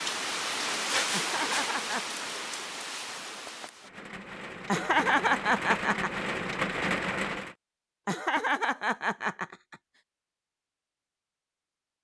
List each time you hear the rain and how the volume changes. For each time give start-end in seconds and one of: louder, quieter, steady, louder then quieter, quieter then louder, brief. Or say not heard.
0.0-7.5 quieter then louder.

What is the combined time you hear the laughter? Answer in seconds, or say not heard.
4 s.